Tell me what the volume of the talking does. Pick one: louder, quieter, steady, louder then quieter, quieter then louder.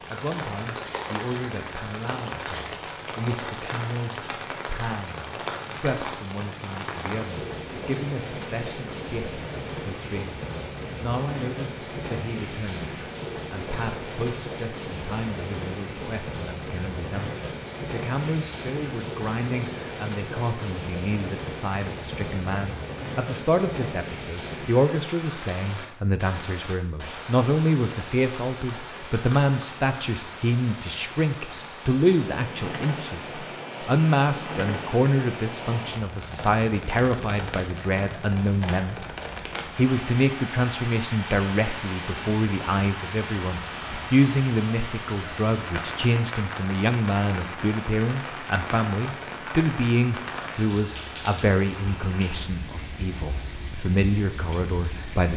louder.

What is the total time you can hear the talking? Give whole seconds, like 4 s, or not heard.
55 s.